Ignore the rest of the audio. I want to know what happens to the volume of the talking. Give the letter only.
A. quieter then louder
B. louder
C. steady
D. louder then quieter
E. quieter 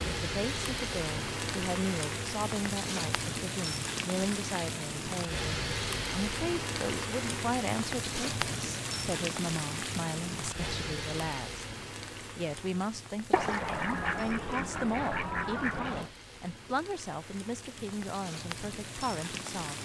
C.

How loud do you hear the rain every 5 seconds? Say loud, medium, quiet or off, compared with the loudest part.
loud, loud, medium, medium.